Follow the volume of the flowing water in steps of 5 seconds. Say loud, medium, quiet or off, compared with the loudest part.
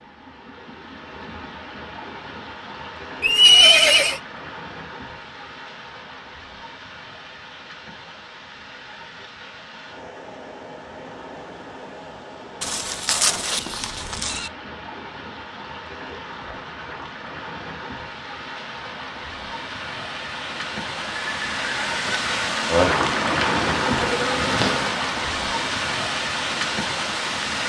quiet, quiet, quiet, medium, loud, loud.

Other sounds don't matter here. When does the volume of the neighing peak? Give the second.
4 s.